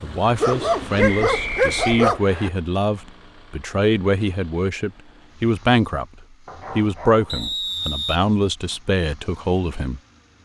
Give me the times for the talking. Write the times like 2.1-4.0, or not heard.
0.0-6.0, 6.7-10.0.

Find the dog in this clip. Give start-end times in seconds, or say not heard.
0.4-2.2, 6.5-7.5.